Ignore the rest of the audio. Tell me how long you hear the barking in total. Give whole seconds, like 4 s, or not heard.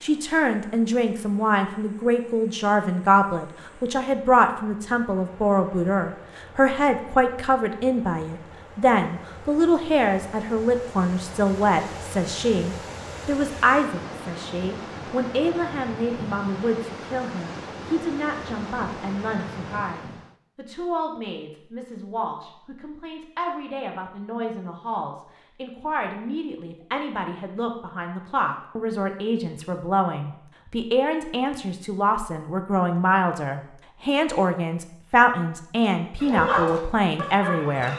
2 s.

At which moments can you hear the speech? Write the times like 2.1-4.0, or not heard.
0.0-37.9.